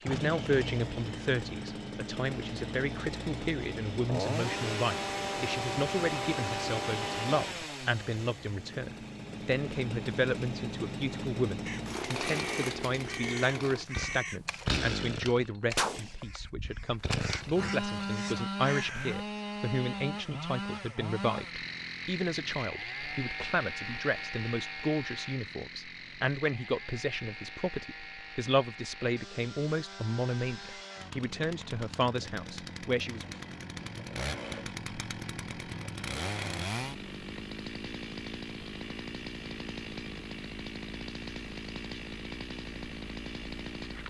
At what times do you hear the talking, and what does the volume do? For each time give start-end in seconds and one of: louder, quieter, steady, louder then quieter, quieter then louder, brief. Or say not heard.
0.0-33.4 steady.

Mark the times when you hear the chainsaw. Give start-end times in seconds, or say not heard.
0.0-44.0.